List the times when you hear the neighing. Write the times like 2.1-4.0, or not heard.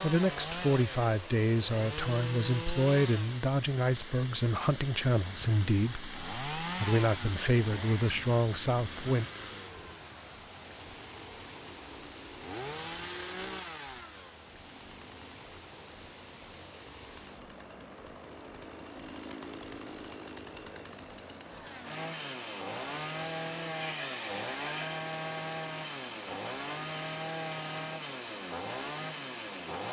23.7-24.9.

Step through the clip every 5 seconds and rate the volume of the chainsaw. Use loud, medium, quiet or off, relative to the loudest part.
loud, loud, medium, medium, loud, loud.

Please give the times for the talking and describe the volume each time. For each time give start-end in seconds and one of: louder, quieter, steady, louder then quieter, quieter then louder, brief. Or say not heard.
0.0-9.2 steady.